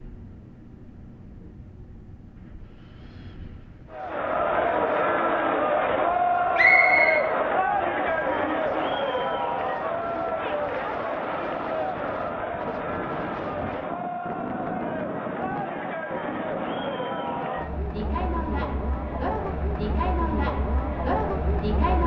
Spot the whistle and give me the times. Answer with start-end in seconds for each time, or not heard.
6.5-7.2.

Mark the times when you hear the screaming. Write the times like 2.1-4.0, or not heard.
not heard.